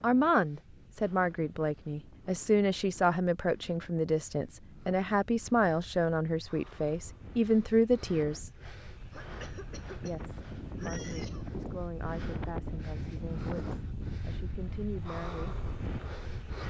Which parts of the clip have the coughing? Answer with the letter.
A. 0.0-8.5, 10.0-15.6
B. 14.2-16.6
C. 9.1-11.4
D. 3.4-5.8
C.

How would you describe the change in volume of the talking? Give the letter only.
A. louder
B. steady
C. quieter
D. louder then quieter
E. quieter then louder
C.